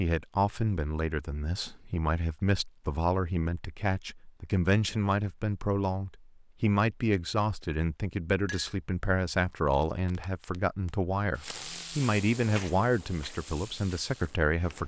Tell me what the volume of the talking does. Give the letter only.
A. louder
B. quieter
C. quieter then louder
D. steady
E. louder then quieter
D.